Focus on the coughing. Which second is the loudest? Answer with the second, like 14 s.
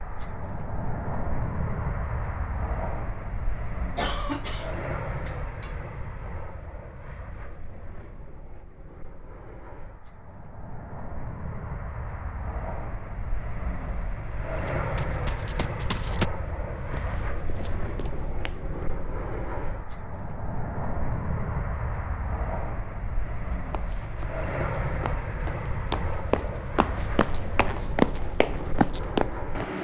4 s.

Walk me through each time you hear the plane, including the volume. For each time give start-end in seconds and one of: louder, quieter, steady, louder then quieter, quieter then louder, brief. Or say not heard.
0.0-29.7 quieter then louder.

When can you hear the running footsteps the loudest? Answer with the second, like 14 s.
28 s.